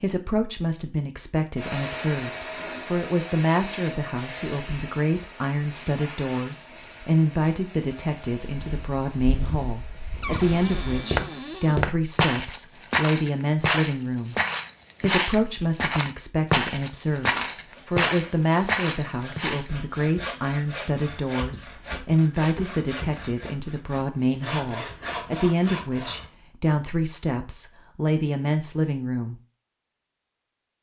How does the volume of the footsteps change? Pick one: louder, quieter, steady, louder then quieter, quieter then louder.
louder.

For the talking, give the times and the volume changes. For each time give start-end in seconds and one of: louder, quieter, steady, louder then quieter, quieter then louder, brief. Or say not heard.
0.0-14.3 steady
15.0-29.4 steady.